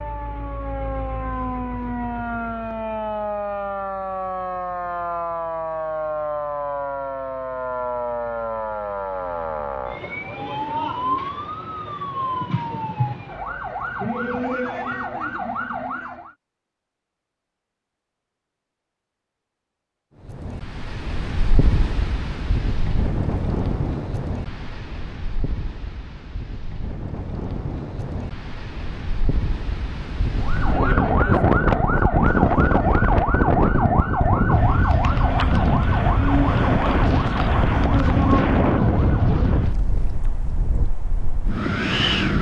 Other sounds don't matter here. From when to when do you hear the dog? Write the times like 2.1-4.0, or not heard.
not heard.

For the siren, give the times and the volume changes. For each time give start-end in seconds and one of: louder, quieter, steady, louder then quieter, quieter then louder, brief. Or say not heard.
0.0-16.4 steady
30.4-39.6 steady.